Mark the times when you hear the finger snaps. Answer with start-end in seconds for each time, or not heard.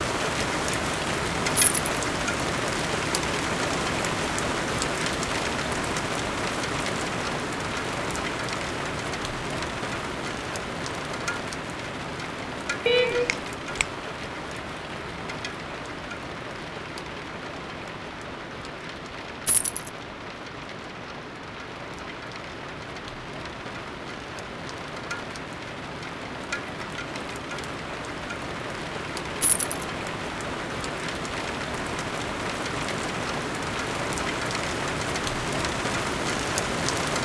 12.8-13.8.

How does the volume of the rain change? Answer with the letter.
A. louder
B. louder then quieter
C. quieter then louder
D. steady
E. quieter
C.